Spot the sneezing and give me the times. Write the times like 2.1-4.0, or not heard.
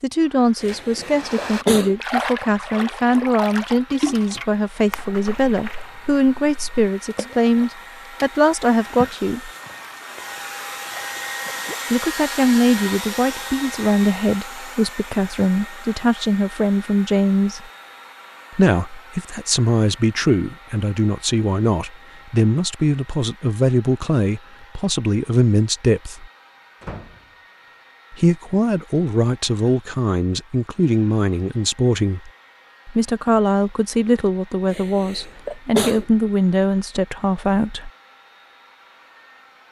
0.6-1.9, 34.7-36.0.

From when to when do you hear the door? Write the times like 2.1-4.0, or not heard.
26.8-27.2.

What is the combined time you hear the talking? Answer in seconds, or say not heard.
33 s.